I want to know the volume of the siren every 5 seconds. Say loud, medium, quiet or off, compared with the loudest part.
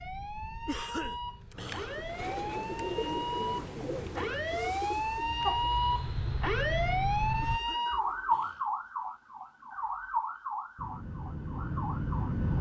medium, loud, medium.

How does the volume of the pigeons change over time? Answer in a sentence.
The loudness of the pigeons goes down.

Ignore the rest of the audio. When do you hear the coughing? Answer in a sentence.
You can hear the coughing from 0.7 to 2.0 s and from 7.4 to 8.7 s.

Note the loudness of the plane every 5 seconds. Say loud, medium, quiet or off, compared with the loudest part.
quiet, loud, loud.